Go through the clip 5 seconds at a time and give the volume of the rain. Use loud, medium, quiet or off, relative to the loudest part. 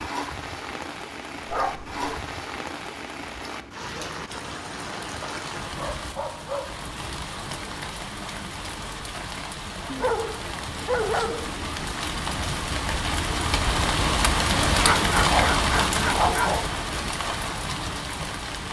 medium, medium, loud, loud.